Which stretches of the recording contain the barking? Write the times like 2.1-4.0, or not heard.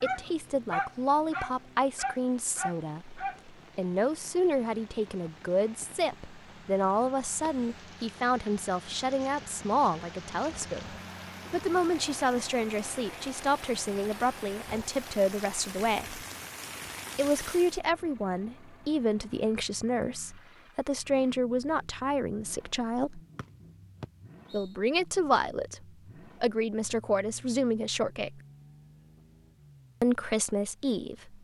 0.0-3.4.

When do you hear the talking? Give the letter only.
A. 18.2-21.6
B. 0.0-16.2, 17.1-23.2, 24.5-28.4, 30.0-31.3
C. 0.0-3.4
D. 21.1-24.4
B.